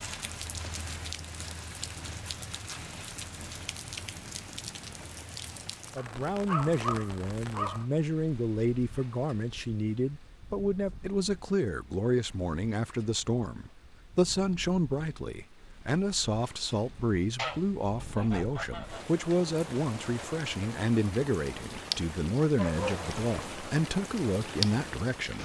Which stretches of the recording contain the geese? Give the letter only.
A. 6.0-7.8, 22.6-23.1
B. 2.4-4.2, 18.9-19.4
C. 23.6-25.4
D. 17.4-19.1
D.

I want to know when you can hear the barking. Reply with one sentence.
You can hear the barking from 6.0 to 7.8 s and from 22.6 to 23.1 s.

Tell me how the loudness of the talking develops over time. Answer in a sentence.
The loudness of the talking stays about the same.